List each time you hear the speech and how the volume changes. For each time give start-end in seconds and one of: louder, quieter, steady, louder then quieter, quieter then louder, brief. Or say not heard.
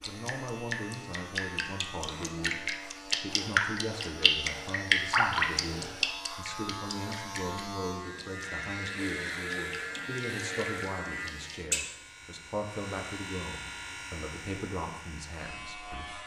0.1-16.2 steady.